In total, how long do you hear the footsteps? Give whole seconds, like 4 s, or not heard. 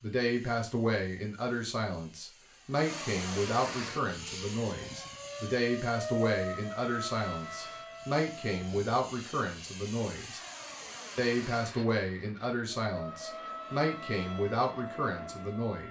not heard.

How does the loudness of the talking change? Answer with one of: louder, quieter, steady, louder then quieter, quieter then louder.
steady.